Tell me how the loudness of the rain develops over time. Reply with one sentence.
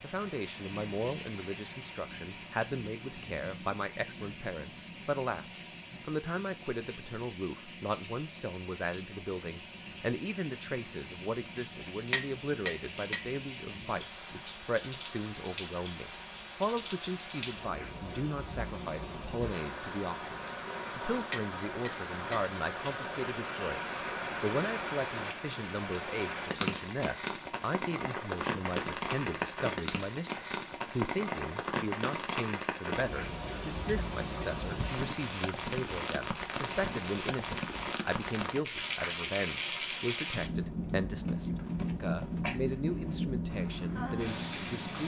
The volume of the rain goes up.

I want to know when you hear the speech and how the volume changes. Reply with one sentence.
The speech can be heard from 0.0 to 45.0 s, at a steady volume.